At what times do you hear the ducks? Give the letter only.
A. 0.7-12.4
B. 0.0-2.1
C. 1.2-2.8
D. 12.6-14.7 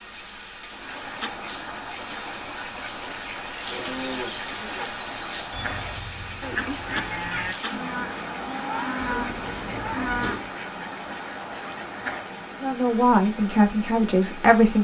A.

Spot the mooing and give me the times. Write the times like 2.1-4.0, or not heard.
3.6-10.4.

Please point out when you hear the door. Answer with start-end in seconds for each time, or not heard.
8.9-10.5.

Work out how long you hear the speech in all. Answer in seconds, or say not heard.
2 s.